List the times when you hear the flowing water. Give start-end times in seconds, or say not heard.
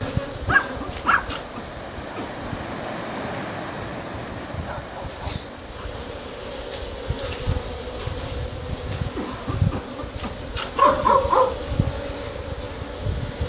0.0-13.4.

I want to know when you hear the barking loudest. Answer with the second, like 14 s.
11 s.